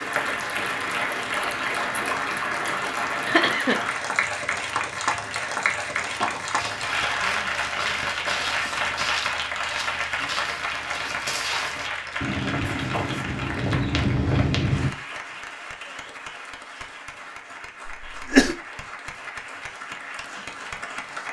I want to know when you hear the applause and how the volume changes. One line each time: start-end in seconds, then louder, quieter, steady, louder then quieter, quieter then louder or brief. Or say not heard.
0.0-21.2 quieter.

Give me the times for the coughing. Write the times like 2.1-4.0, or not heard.
3.2-3.9, 17.9-18.6.